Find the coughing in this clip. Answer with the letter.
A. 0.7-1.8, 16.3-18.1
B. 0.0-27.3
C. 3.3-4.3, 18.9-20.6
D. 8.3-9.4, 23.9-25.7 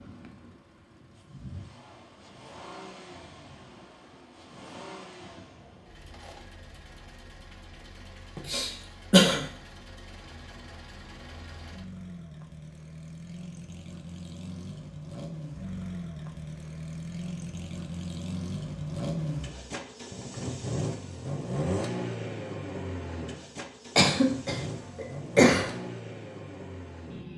D.